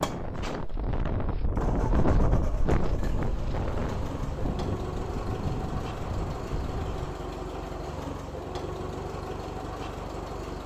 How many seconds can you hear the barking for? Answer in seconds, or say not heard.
not heard.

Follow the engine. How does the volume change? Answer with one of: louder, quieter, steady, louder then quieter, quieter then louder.
steady.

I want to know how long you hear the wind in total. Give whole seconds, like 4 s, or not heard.
7 s.